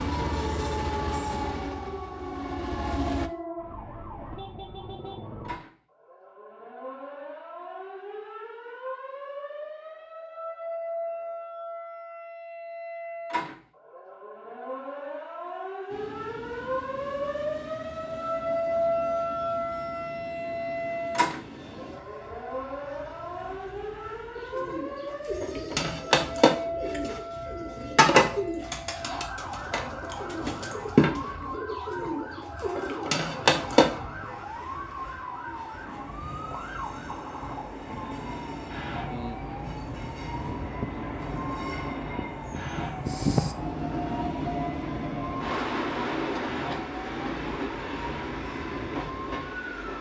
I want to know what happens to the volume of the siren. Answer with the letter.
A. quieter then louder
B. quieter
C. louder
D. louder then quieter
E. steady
D.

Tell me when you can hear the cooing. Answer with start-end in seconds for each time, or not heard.
24.4-34.0.